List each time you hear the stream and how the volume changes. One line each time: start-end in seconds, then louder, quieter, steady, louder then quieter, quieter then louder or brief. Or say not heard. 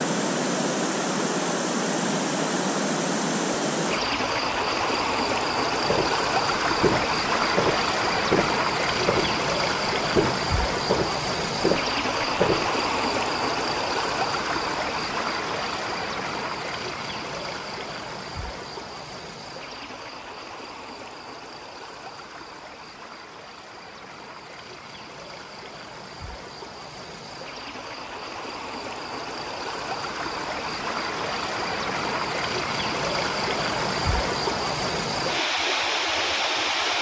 0.0-36.9 quieter then louder.